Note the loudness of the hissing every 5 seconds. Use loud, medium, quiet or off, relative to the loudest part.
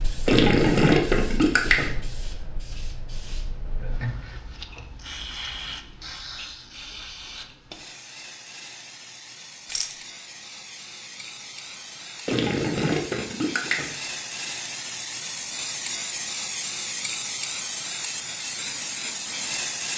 medium, medium, medium, loud.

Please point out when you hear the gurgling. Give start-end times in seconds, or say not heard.
0.2-1.9, 12.2-13.9.